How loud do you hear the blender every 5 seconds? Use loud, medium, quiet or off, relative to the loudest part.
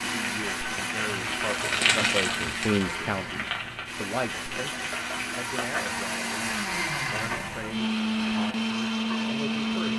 medium, loud.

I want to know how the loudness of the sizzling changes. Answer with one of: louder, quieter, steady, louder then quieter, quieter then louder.
quieter.